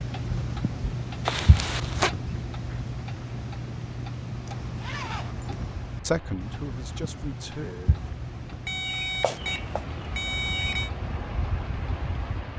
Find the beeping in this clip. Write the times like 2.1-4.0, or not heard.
8.7-10.9.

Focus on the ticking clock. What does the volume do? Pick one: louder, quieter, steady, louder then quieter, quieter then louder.
quieter.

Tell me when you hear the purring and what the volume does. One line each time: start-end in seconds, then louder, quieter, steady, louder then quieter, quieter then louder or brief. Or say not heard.
not heard.